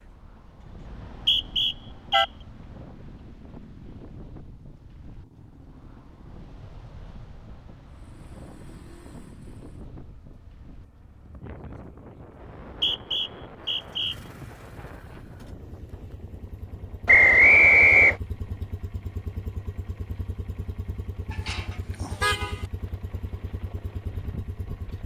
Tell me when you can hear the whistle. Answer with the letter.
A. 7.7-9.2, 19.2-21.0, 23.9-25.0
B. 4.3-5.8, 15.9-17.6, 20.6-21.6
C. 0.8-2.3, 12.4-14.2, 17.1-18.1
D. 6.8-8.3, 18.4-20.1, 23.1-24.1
C.